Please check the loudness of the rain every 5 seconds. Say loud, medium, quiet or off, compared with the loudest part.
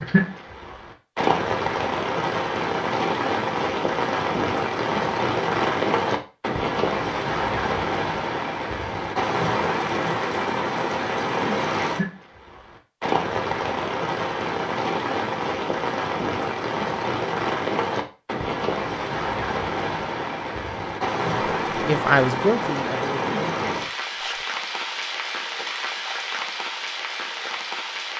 loud, loud, loud, loud, loud, medium.